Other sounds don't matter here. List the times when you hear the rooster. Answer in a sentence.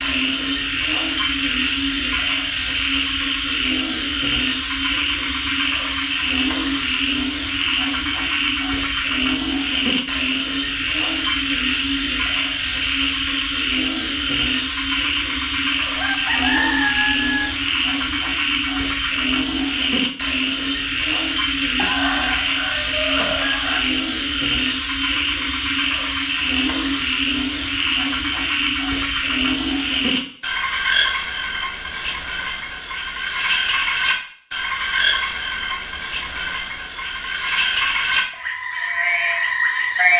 The rooster can be heard from 15.9 to 17.5 s and from 21.8 to 23.8 s.